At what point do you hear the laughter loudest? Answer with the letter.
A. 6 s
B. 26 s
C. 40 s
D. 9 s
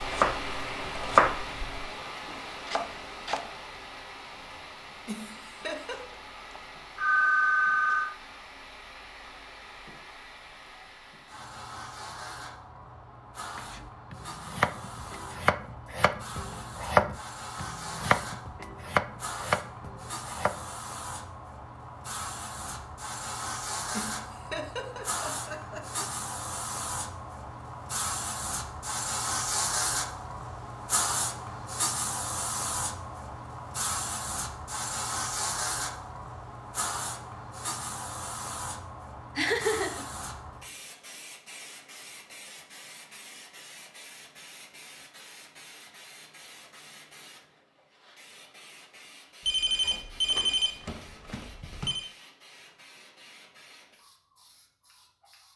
C.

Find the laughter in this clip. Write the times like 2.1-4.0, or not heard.
5.0-6.2, 23.9-26.1, 39.4-40.0.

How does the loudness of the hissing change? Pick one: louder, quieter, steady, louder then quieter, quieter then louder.
louder then quieter.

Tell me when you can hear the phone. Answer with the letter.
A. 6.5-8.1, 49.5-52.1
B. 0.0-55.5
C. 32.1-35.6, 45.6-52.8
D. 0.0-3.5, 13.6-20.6
A.